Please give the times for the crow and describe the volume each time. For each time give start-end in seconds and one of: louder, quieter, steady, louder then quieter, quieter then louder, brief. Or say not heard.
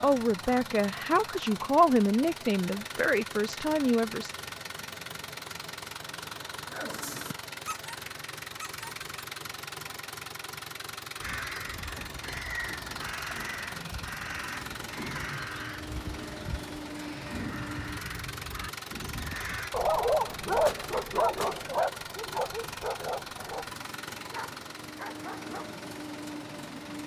11.2-19.8 steady.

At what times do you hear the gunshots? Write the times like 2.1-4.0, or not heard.
20.6-21.7.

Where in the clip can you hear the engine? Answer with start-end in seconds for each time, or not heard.
0.0-27.0.